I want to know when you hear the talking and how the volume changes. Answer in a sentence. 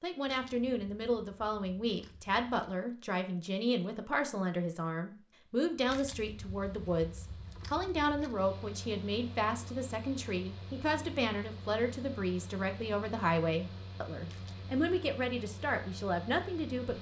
The talking can be heard from 0.0 to 16.9 s, at a steady volume.